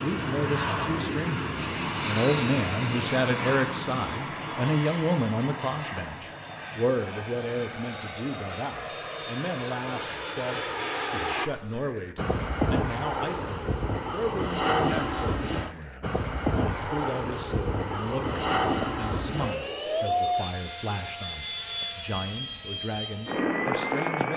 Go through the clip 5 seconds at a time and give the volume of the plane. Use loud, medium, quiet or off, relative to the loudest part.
loud, medium, loud, loud, loud.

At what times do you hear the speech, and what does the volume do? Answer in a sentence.
The speech can be heard from 0.0 to 24.3 s, getting quieter.